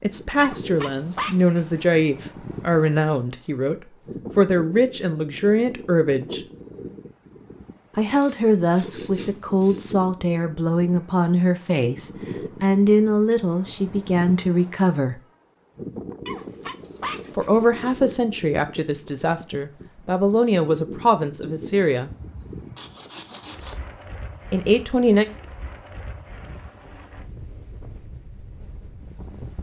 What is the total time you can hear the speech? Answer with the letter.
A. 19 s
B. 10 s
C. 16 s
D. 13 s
A.